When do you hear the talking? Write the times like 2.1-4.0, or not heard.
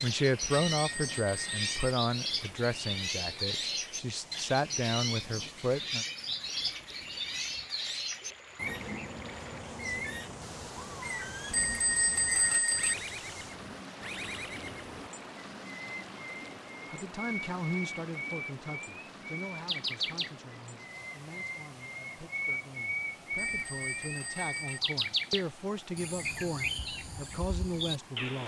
0.0-6.0, 16.9-28.4.